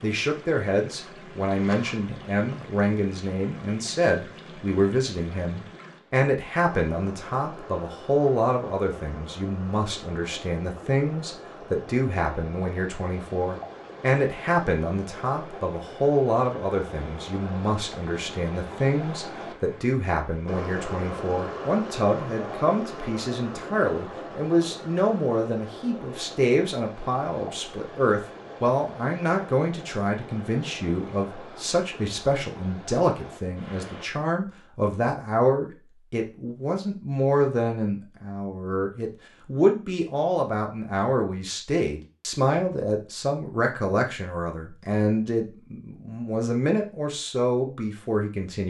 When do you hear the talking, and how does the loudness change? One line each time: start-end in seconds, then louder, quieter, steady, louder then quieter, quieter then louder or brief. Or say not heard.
0.0-48.6 steady.